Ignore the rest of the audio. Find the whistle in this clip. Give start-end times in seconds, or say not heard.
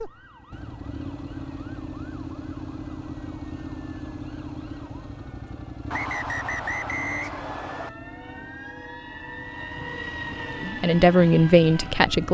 5.9-7.9.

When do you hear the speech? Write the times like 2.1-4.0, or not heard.
10.6-12.2.